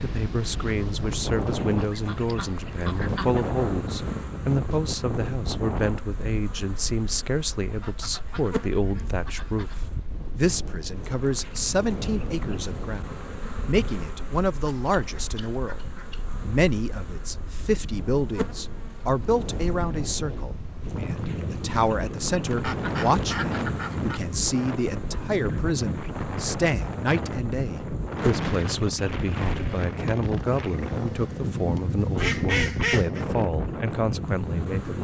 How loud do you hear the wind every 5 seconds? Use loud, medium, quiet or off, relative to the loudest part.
loud, medium, medium, medium, loud, loud, loud.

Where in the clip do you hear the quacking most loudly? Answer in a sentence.
The volume of the quacking peaks at 32 seconds.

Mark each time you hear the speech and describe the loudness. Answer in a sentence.
The speech can be heard from 0.0 to 15.8 s, at a steady volume; and from 16.4 to 35.0 s, at a steady volume.